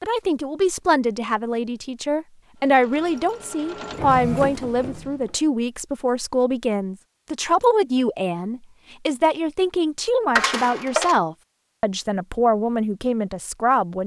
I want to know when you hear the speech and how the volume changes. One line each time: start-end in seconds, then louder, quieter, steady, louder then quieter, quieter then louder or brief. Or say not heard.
0.0-14.0 steady.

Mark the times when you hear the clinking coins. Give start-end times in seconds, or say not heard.
3.0-3.5, 10.3-11.2.